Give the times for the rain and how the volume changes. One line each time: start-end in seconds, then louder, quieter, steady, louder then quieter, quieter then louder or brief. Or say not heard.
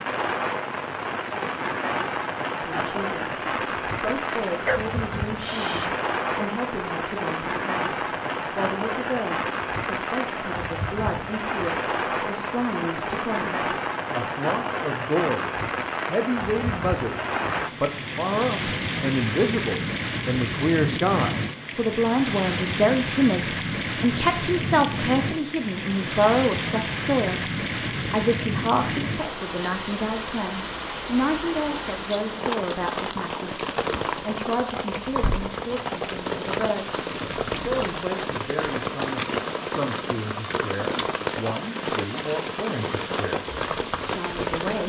0.0-44.8 steady.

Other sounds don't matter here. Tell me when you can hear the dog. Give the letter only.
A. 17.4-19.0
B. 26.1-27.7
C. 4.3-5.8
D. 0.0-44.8
C.